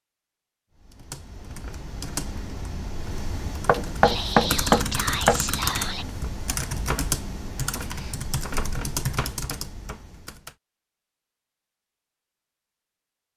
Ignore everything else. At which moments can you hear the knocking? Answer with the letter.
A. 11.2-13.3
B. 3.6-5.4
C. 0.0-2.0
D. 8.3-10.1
B.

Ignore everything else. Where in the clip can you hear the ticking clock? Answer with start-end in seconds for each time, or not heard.
not heard.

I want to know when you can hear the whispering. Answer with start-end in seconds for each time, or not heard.
4.0-6.0.